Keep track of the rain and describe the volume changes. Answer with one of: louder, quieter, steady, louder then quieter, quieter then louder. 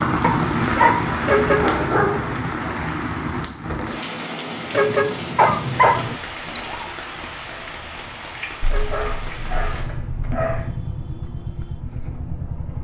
quieter.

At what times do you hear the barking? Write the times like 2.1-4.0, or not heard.
0.2-2.2, 5.3-6.8, 8.6-10.7.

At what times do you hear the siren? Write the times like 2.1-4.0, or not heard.
not heard.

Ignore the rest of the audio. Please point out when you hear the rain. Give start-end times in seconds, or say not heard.
0.0-9.8.